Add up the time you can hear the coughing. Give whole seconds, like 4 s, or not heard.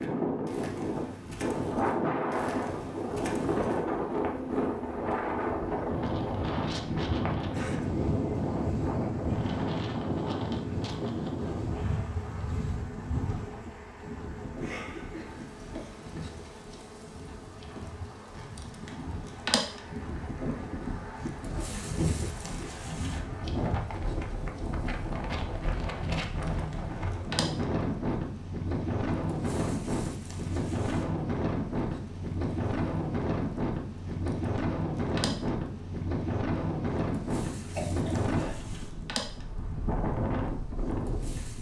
2 s.